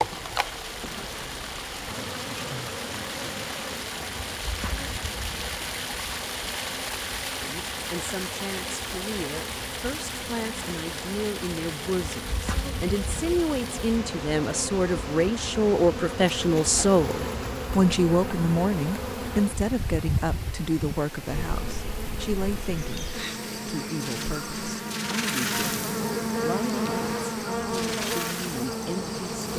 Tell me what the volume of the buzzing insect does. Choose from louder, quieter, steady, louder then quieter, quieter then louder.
louder.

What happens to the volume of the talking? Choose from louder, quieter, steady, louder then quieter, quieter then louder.
louder then quieter.